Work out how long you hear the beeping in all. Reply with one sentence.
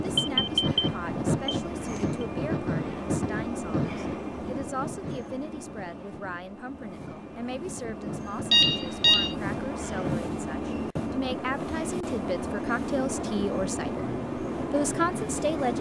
You can hear the beeping for 3 seconds altogether.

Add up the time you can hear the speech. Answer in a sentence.
The speech can be heard for 15 seconds in total.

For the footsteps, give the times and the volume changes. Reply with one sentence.
The footsteps can't be heard in this clip.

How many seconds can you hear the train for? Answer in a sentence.
You can hear the train for 16 seconds altogether.